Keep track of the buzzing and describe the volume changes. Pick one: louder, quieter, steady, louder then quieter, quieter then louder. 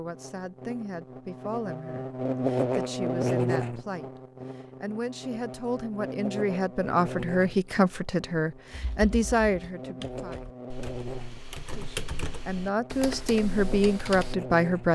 quieter.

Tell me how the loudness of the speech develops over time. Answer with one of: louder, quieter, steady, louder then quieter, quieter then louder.
louder.